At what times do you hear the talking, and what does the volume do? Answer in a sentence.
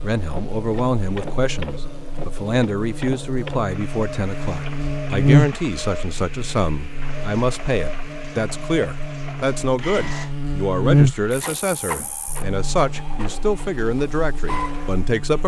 The talking can be heard from 0.0 to 15.4 s, at a steady volume.